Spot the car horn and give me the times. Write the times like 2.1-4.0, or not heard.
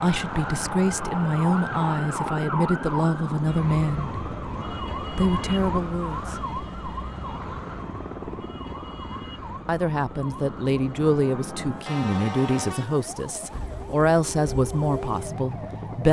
11.8-12.9.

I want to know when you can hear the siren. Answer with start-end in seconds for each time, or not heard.
0.0-16.0.